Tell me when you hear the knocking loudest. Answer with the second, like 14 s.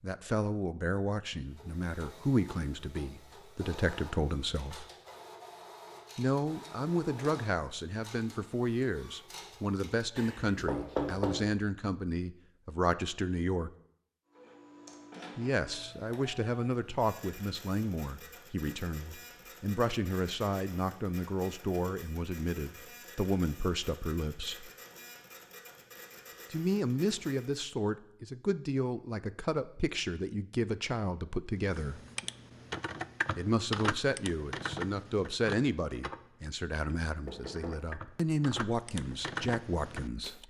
11 s.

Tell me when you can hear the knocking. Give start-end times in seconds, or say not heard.
10.2-11.6, 37.2-37.9.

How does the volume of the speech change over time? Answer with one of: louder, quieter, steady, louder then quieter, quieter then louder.
steady.